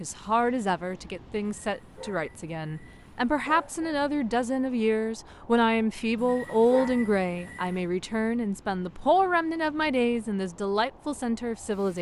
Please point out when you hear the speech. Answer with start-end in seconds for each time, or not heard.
0.0-11.9.